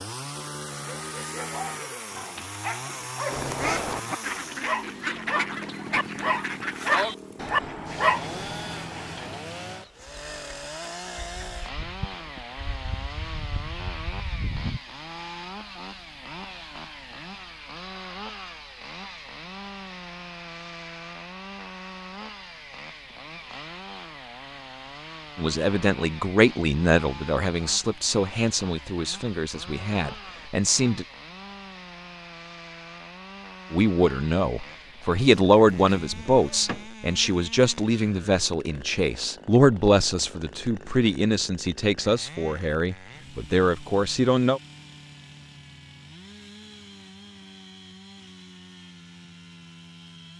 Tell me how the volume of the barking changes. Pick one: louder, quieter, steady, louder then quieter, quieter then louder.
louder.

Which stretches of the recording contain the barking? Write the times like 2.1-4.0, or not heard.
0.7-8.2.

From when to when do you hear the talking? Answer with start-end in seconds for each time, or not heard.
25.4-31.1, 33.7-44.6.